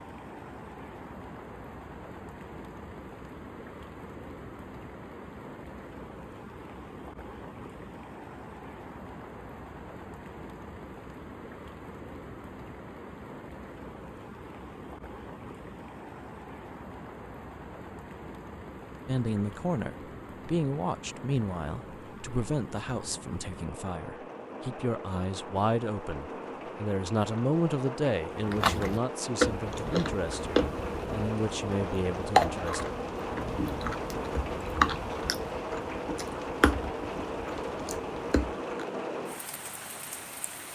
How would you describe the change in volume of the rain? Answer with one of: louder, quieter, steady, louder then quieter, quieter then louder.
louder.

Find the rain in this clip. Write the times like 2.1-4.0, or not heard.
0.0-40.7.